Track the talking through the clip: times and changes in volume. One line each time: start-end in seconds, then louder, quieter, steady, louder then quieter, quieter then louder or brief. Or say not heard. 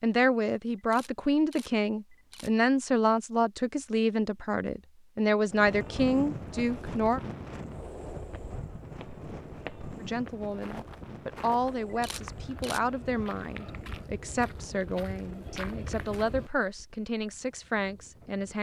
0.0-7.2 steady
10.0-18.5 steady.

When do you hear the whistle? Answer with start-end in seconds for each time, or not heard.
not heard.